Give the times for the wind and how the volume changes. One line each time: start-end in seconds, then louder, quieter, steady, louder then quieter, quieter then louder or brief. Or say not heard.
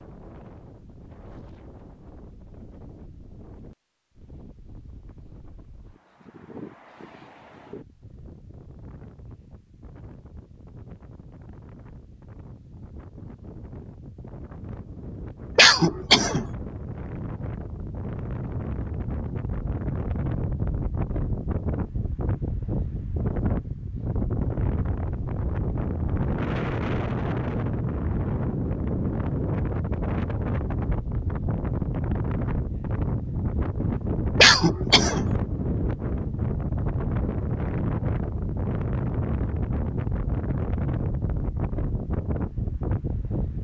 0.0-43.6 louder.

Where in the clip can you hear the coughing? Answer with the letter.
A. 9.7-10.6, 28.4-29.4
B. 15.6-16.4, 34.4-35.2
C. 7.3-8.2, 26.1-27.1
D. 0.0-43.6
B.